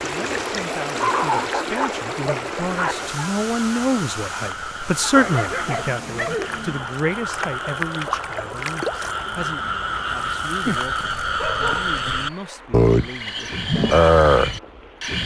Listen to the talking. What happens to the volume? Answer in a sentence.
The loudness of the talking goes up, then down.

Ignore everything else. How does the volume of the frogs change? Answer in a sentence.
The volume of the frogs goes up.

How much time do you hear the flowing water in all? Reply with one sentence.
You can hear the flowing water for 15 seconds altogether.